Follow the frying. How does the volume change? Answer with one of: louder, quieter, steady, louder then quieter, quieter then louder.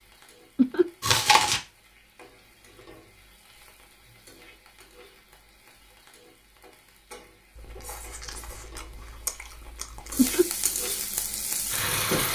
louder.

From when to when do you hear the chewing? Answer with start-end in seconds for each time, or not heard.
1.0-1.6, 7.5-10.3.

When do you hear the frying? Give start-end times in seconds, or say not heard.
0.0-12.3.